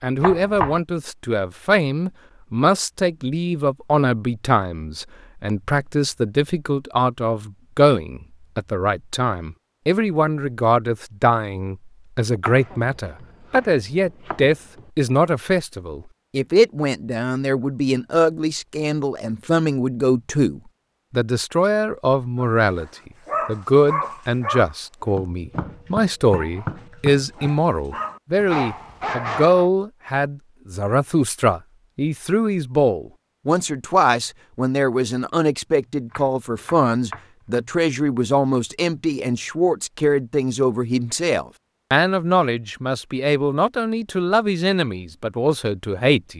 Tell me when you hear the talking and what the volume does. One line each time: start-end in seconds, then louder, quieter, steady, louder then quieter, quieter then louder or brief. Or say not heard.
0.0-46.3 steady.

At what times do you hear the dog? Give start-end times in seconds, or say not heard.
22.6-29.7.